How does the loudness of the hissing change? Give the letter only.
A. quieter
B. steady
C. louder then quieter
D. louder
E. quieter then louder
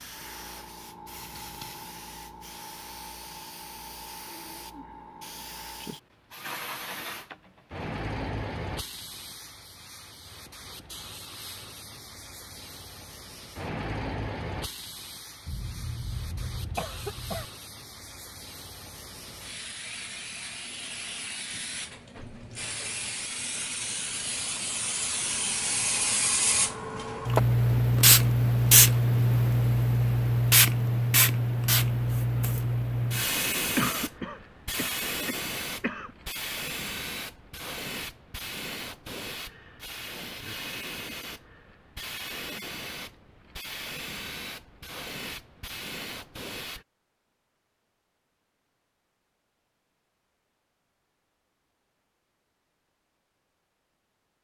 C.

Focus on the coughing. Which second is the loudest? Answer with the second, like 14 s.
34 s.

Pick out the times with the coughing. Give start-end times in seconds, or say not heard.
15.4-17.4, 33.8-36.1.